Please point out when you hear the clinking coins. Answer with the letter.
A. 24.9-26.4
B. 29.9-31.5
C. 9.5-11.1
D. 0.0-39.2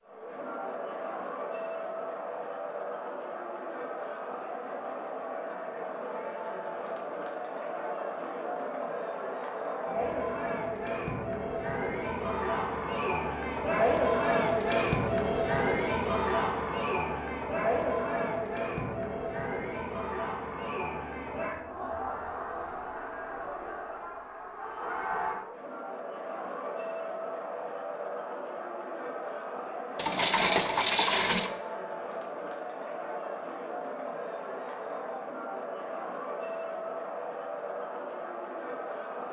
B.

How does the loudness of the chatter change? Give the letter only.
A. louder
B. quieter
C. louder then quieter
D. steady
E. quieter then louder
C.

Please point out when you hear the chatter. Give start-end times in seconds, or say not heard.
0.0-39.2.